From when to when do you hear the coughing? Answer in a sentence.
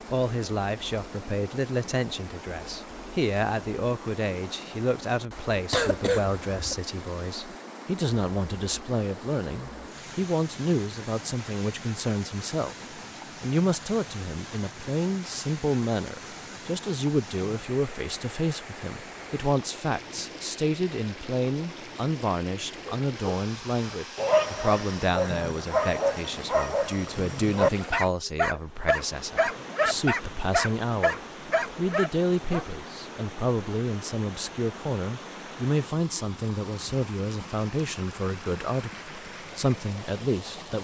The coughing can be heard from 5.7 to 6.8 s.